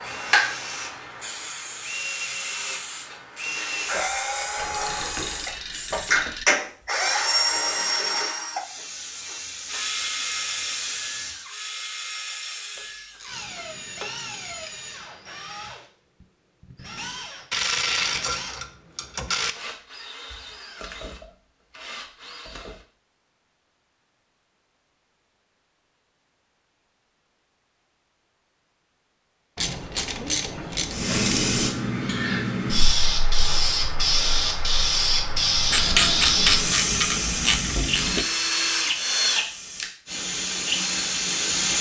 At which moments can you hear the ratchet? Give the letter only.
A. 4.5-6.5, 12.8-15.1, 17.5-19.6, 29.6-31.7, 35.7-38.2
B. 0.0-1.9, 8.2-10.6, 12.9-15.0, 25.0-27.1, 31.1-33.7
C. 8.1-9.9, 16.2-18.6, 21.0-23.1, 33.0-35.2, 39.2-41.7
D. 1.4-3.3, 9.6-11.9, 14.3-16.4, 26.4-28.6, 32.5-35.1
A.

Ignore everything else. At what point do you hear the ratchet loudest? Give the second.
36 s.